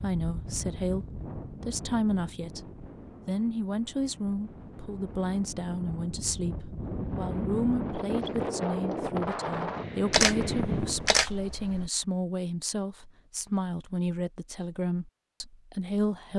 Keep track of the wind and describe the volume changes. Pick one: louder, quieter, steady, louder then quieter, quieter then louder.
quieter then louder.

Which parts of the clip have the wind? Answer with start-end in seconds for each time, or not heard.
0.0-11.1.